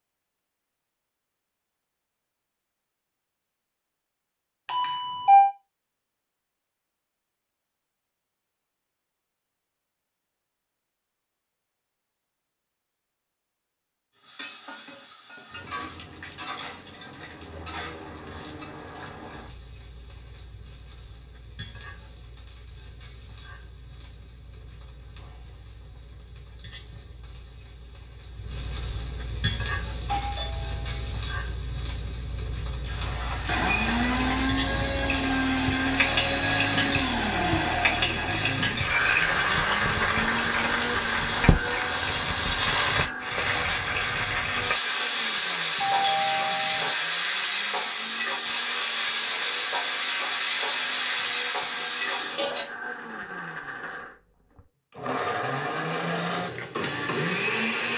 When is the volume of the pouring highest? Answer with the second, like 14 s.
34 s.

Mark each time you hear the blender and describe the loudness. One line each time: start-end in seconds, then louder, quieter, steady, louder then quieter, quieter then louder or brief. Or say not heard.
33.4-57.9 quieter then louder.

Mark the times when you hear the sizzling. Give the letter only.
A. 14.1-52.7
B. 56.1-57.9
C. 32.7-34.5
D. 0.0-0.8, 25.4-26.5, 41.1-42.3
A.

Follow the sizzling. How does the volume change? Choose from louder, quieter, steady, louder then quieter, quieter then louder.
louder.